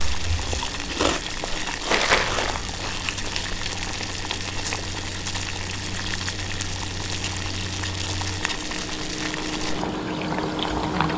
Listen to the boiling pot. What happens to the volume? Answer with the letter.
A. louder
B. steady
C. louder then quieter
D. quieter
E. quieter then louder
B.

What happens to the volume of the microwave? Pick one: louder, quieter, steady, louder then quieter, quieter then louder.
louder.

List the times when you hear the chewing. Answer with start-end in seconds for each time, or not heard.
0.0-3.5.